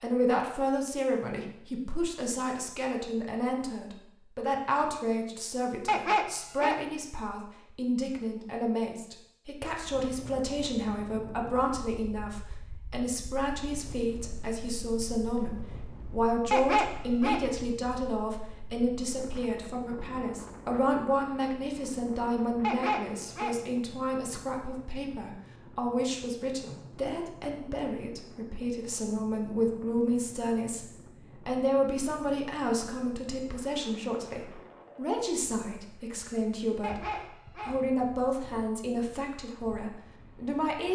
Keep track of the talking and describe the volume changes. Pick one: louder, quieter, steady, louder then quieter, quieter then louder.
steady.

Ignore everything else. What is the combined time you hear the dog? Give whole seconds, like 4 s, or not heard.
4 s.